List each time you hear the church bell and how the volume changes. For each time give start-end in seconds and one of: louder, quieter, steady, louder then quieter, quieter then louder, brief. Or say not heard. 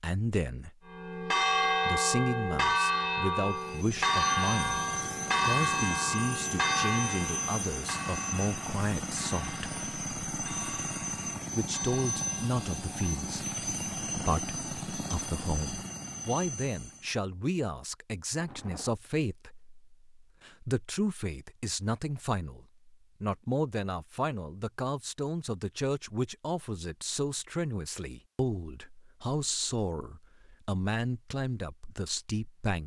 0.8-13.3 quieter.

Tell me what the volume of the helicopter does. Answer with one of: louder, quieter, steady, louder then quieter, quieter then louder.
steady.